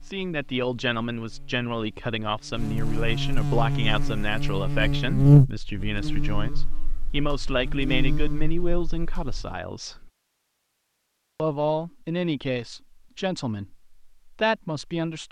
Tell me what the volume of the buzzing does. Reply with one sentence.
The loudness of the buzzing goes up, then down.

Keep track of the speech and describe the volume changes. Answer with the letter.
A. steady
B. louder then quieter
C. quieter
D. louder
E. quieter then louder
A.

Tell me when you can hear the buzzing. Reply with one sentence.
You can hear the buzzing from 0.0 to 9.6 s.